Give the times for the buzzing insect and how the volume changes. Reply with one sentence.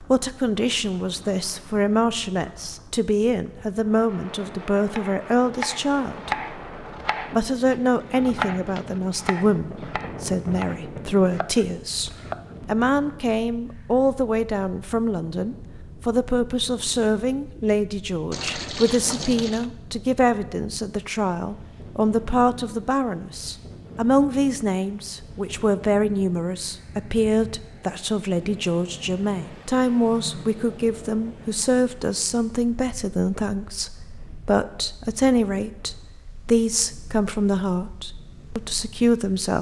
You can't hear the buzzing insect here.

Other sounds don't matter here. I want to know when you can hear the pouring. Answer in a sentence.
You can hear the pouring from 18.3 to 19.7 s.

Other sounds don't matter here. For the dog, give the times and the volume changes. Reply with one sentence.
The dog can't be heard in this clip.